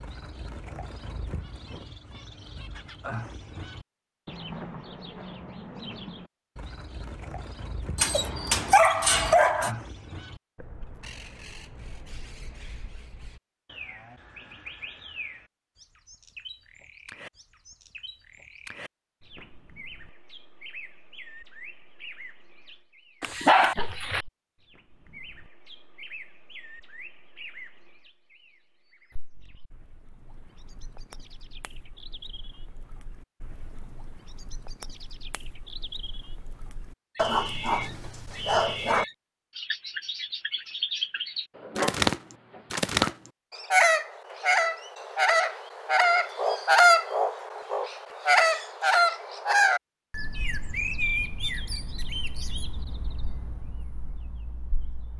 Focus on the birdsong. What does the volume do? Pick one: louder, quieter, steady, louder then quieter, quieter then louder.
quieter then louder.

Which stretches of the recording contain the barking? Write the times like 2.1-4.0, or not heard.
8.0-9.7, 23.2-24.2, 37.1-39.0, 41.5-43.1.